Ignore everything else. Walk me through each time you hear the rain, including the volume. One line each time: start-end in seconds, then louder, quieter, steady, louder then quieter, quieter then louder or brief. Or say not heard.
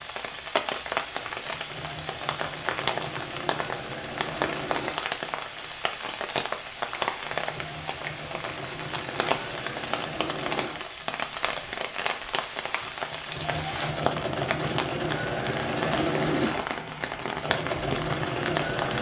0.0-18.9 steady.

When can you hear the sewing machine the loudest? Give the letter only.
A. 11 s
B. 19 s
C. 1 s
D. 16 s
D.